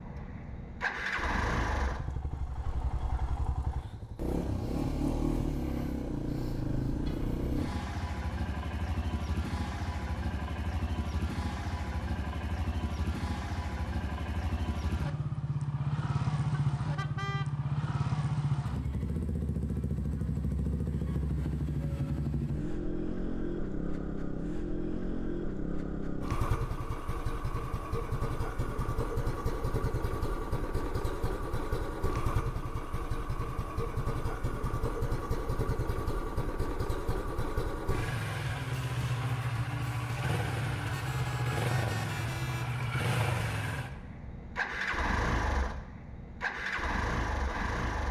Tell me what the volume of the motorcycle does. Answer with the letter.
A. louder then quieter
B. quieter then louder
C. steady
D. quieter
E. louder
C.